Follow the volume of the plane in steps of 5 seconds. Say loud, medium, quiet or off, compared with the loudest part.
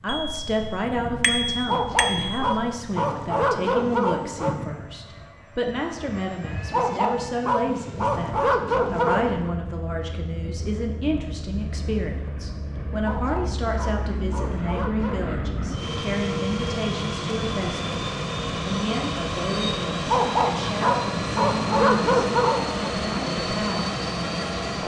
medium, quiet, medium, loud, loud.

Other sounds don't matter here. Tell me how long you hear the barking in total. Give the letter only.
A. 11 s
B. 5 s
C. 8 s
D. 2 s
A.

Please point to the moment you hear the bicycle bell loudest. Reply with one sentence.
The loudest moment of the bicycle bell is at 1 second.